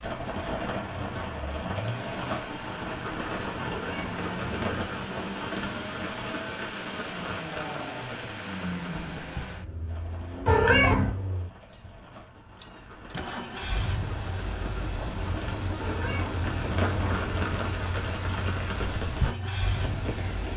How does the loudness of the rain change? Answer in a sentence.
The loudness of the rain goes down, then up.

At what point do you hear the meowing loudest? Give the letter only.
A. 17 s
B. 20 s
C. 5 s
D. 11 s
D.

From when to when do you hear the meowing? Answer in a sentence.
You can hear the meowing from 3.6 to 4.8 s, from 10.4 to 11.2 s and from 15.8 to 17.5 s.